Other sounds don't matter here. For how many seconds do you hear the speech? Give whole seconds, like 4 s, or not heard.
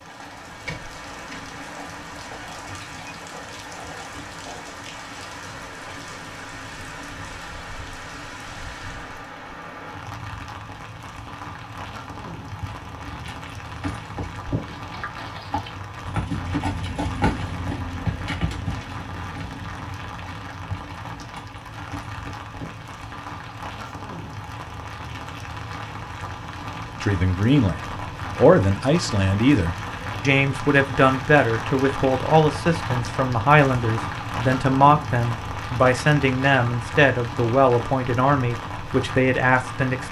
13 s.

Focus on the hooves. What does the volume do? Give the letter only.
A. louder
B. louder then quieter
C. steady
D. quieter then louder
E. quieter
B.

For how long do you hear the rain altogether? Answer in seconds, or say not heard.
40 s.